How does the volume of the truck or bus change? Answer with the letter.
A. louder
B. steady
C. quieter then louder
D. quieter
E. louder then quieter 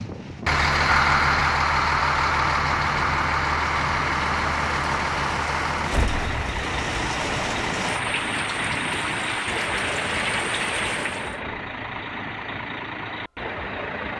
D.